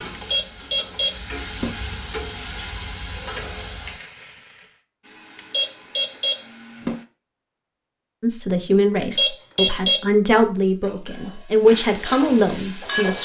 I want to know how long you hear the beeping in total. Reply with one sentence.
You can hear the beeping for 4 seconds altogether.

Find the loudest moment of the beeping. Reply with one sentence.
The loudest moment of the beeping is at 10 seconds.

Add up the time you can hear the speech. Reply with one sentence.
The speech can be heard for 5 seconds in total.